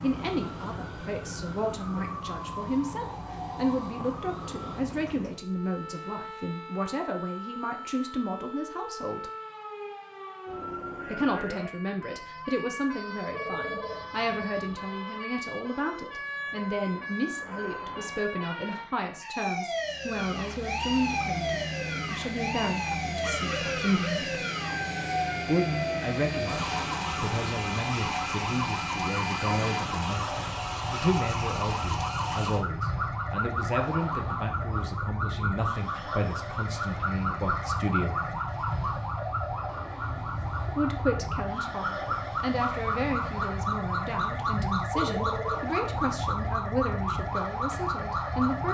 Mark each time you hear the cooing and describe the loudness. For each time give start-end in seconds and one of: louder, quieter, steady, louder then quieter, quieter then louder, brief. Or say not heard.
not heard.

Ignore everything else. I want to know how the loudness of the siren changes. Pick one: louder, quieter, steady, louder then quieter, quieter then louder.
louder.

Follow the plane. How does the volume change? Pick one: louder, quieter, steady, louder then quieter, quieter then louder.
steady.